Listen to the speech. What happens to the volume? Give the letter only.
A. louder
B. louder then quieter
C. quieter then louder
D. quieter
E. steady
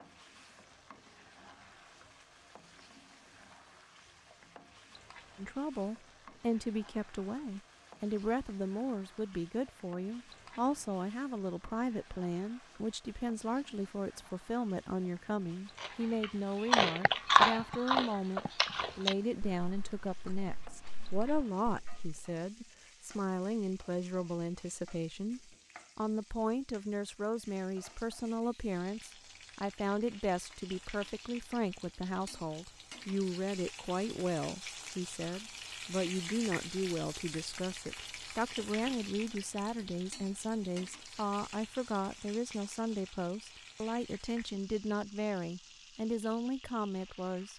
E.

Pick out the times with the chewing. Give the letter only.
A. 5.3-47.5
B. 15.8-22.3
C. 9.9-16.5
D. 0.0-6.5
B.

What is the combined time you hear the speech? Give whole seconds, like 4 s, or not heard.
42 s.